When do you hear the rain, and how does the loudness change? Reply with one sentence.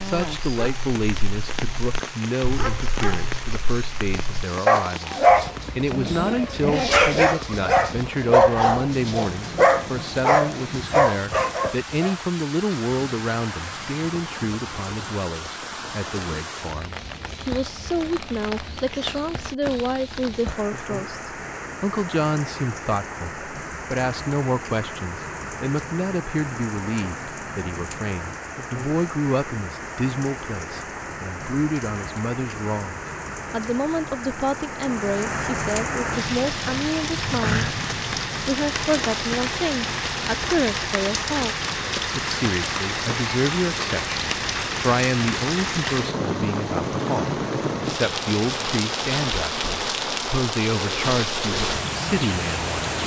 The rain can be heard from 0.0 to 53.0 s, getting louder.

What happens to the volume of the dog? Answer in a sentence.
The loudness of the dog goes up.